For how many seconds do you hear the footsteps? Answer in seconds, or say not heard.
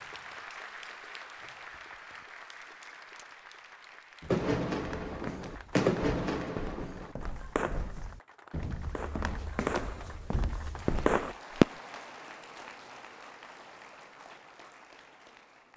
7 s.